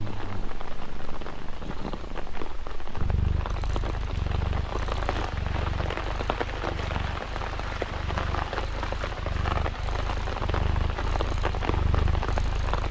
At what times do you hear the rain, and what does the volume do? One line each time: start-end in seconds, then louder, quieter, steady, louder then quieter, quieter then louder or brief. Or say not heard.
0.0-12.8 louder.